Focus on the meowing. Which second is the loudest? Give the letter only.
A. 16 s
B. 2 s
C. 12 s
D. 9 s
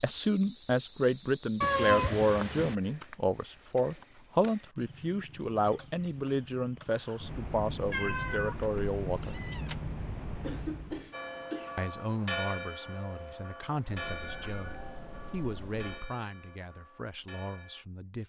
B.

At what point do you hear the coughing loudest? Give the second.
11 s.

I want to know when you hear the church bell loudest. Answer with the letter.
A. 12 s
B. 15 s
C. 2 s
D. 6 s
A.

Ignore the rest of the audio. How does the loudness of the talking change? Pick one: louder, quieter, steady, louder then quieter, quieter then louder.
quieter.